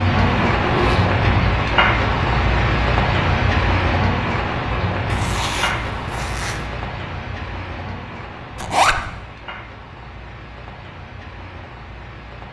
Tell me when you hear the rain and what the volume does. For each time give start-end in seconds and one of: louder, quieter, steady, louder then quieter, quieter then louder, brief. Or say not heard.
0.0-12.4 quieter.